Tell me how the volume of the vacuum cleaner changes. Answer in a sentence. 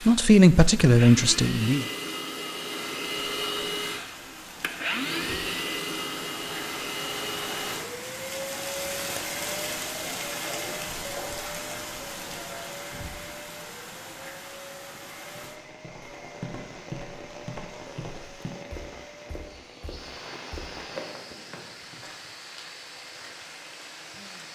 The loudness of the vacuum cleaner goes down.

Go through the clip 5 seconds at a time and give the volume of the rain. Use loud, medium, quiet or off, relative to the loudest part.
medium, loud, loud, medium, medium.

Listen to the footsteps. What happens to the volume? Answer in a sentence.
The volume of the footsteps goes down, then up.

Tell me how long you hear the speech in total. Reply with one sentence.
The speech can be heard for 2 seconds in total.